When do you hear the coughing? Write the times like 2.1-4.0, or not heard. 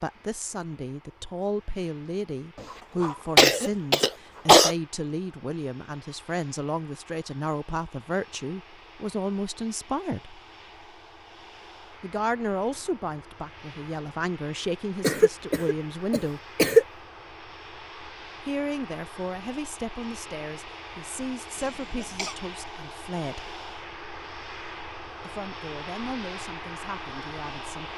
2.6-4.8, 15.0-16.9, 21.6-22.4.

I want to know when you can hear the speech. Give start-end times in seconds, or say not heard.
0.0-10.4, 12.0-16.5, 18.4-23.6, 25.2-27.9.